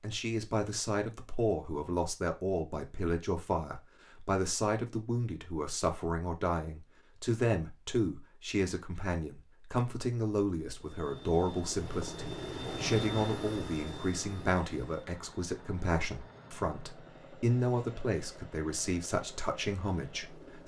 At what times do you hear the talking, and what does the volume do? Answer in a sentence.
You can hear the talking from 0.0 to 20.6 s, at a steady volume.